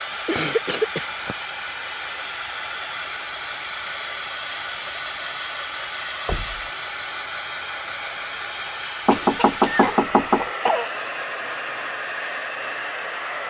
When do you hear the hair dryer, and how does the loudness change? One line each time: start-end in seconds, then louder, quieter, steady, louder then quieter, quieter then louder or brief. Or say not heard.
0.0-13.4 steady.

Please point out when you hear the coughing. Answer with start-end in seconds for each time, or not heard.
0.2-1.4, 9.1-10.9.